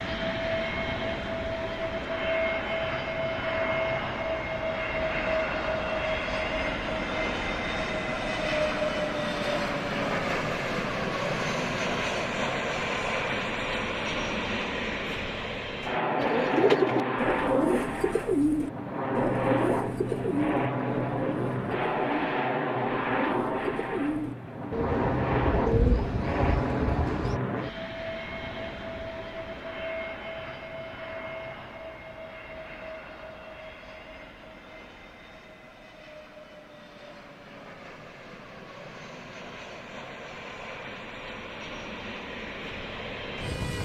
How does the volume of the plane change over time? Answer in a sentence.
The volume of the plane goes down.